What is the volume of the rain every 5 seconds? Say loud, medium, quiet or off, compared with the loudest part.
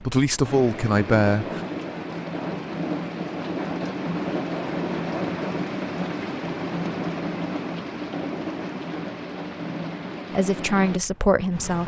loud, loud, medium.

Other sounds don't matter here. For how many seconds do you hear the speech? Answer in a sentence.
You can hear the speech for 3 seconds altogether.